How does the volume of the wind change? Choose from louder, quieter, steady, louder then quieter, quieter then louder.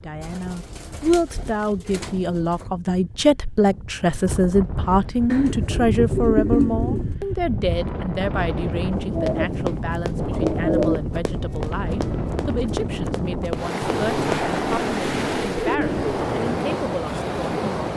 louder.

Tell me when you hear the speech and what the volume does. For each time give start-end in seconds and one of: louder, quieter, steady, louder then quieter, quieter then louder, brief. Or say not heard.
0.0-17.9 quieter.